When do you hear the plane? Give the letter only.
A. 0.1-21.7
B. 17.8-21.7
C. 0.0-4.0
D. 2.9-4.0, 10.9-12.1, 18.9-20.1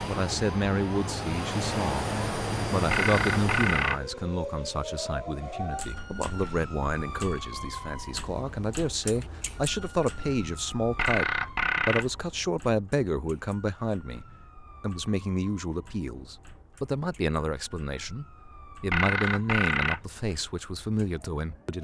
C.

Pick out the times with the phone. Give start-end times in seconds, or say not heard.
2.9-4.0, 10.9-12.1, 18.9-20.1.